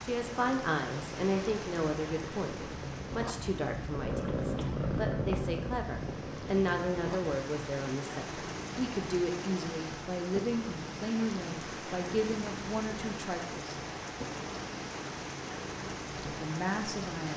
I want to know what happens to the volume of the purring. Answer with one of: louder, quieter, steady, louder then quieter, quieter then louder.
louder then quieter.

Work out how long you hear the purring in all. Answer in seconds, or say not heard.
17 s.